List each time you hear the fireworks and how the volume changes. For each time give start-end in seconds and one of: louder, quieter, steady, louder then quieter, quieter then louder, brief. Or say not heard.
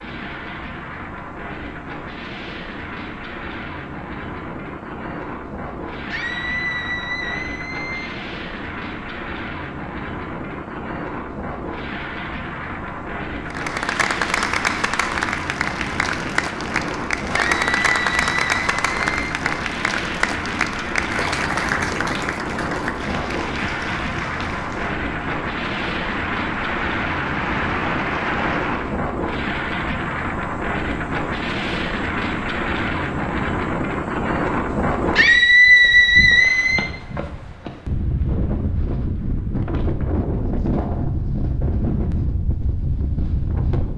not heard.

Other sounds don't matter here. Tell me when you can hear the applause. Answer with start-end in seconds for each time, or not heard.
13.5-29.0.